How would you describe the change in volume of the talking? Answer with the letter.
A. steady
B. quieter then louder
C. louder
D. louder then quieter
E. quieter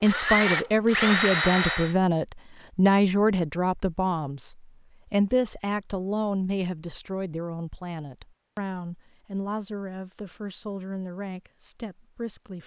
E.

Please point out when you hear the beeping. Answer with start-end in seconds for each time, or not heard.
not heard.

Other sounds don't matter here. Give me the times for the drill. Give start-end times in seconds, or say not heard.
0.0-1.9.